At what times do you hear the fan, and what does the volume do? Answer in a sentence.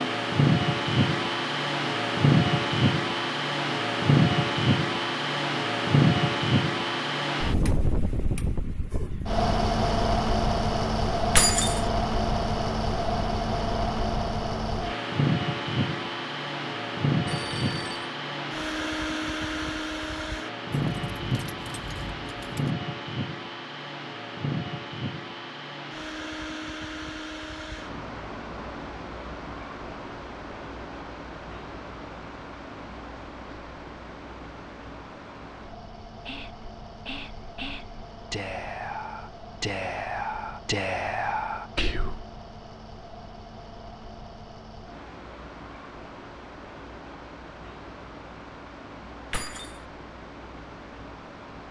You can hear the fan from 0.0 to 51.6 s, getting quieter.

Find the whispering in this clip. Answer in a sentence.
You can hear the whispering from 36.0 to 42.2 s.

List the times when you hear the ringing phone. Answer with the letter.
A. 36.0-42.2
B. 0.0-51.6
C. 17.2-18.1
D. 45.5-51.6
C.